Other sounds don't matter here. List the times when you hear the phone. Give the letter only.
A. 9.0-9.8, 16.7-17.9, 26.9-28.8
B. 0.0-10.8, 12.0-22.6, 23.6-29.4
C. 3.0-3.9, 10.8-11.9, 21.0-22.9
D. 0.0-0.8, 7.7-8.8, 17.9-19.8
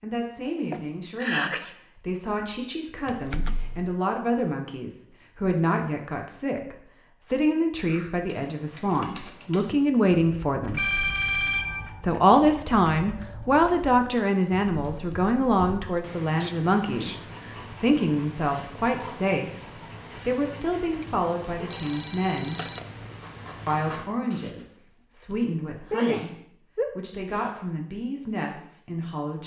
C.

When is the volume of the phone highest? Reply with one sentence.
The volume of the phone peaks at 11 seconds.